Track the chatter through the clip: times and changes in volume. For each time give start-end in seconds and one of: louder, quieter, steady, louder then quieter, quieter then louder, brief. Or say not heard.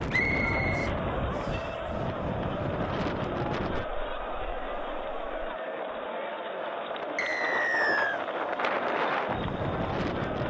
0.1-10.4 steady.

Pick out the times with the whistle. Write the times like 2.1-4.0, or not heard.
0.1-1.6, 7.2-8.2.